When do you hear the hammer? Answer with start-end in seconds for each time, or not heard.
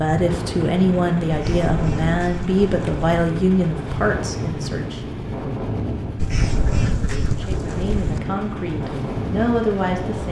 not heard.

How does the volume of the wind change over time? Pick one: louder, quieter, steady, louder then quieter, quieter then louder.
steady.